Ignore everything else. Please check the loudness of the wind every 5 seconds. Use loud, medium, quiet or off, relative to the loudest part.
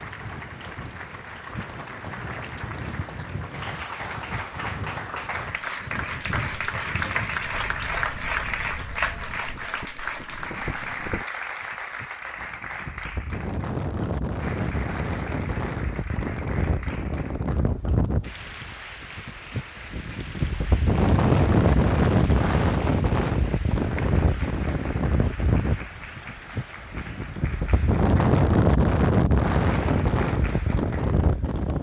quiet, quiet, medium, medium, loud, loud, loud.